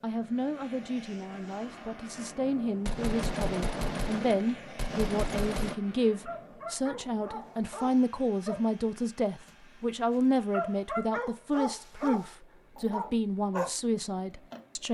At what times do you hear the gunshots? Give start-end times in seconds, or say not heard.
2.9-5.8.